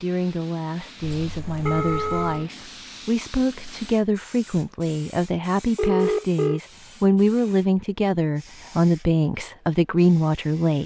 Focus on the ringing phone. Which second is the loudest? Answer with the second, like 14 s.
6 s.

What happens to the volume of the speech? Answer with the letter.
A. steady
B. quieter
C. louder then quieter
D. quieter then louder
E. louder
E.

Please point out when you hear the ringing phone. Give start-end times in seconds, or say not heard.
1.0-2.5, 5.8-6.6.